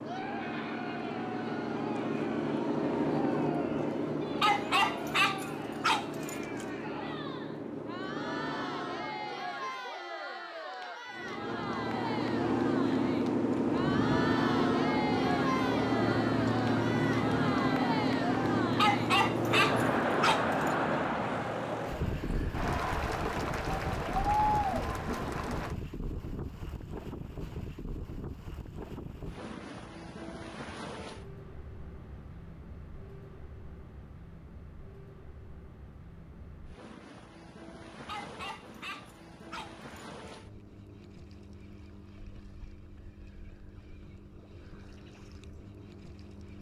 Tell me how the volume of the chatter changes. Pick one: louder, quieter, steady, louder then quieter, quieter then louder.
louder.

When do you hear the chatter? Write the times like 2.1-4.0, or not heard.
0.0-25.8.